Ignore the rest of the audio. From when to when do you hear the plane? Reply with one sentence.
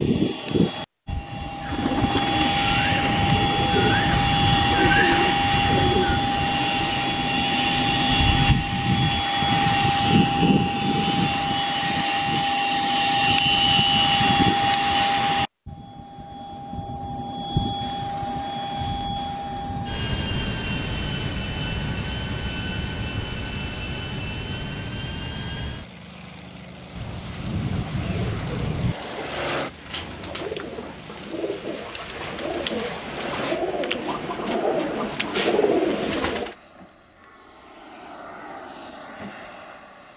You can hear the plane from 0.0 to 40.1 s.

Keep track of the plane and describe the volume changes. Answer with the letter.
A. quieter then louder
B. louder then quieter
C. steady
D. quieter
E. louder
D.